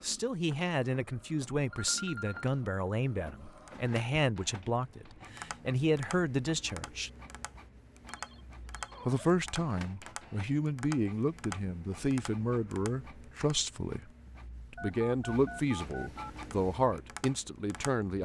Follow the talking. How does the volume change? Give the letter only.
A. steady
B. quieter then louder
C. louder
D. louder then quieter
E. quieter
A.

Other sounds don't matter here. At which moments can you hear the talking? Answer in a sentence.
The talking can be heard from 0.0 to 7.1 s, from 9.1 to 14.1 s and from 14.7 to 18.1 s.